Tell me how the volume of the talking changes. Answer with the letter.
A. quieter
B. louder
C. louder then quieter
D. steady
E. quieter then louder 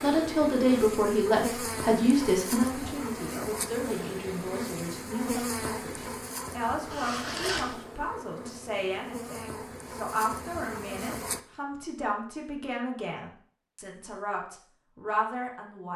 A.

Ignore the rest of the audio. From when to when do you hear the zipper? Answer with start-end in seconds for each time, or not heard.
6.9-7.8.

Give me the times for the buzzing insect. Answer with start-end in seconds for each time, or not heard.
0.0-11.4.